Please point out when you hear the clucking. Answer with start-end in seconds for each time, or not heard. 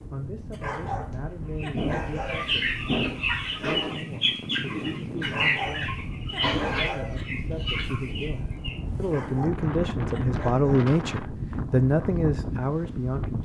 1.6-8.8.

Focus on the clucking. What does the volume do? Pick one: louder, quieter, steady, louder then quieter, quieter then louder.
quieter.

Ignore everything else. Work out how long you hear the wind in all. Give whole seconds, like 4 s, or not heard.
13 s.